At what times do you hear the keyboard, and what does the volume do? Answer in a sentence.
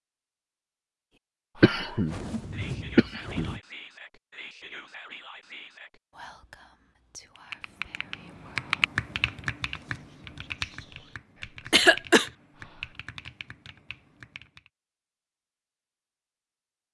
The keyboard can be heard from 7.3 to 14.7 s, getting quieter.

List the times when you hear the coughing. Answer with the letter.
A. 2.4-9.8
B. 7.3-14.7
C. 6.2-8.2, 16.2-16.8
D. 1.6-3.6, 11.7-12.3
D.